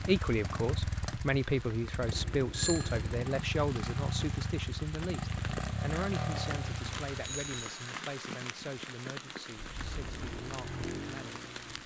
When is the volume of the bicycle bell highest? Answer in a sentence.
The loudest moment of the bicycle bell is at 3 seconds.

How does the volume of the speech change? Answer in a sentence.
The volume of the speech goes down.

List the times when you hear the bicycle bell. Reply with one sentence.
You can hear the bicycle bell from 2.1 to 3.3 s and from 7.2 to 7.7 s.